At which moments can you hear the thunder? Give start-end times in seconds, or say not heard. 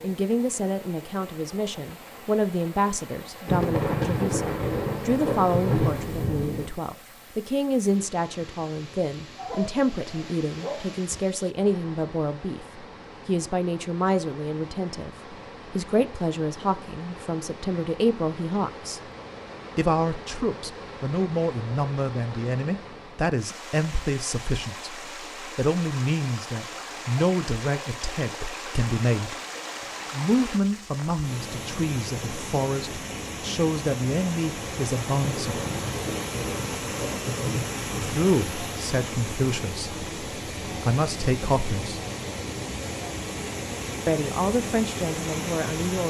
3.5-6.7, 35.2-38.2.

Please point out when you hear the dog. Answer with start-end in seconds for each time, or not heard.
9.3-11.2.